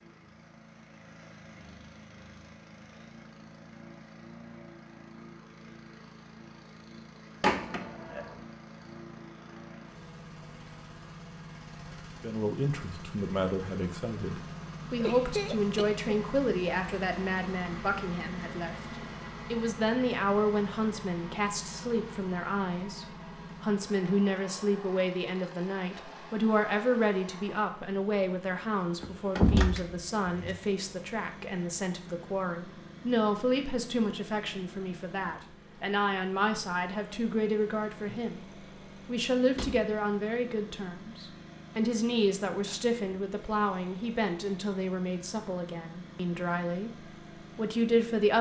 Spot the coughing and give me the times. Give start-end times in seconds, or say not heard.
15.0-16.2.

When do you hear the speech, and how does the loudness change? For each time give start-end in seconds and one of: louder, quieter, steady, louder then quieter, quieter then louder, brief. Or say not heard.
12.2-48.3 steady.